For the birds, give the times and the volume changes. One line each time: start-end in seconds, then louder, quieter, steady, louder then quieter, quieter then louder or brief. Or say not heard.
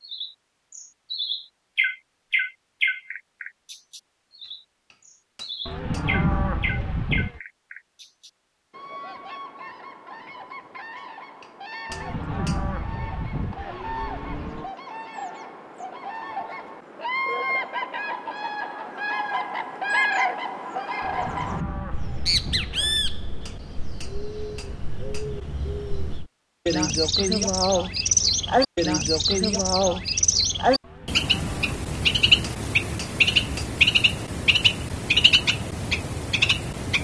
0.0-36.9 quieter then louder.